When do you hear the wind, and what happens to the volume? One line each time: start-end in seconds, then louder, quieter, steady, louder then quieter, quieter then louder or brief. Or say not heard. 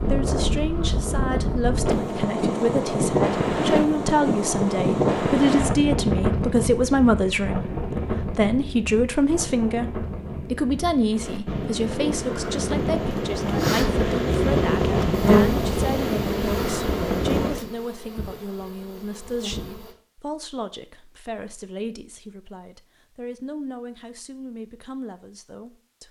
0.0-17.7 quieter then louder.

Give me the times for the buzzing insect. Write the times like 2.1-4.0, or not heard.
15.2-19.9.